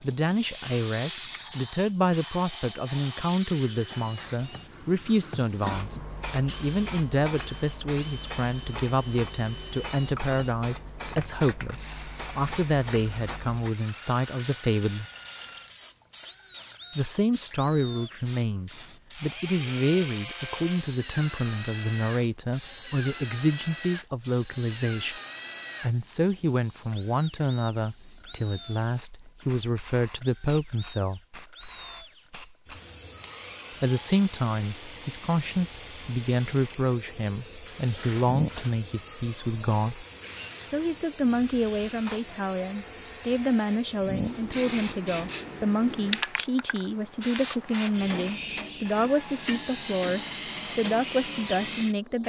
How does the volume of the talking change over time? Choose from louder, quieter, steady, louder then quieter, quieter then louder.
steady.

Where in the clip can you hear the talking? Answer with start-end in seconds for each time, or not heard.
0.0-15.1, 16.9-25.2, 25.8-31.2, 33.8-40.0, 40.6-52.2.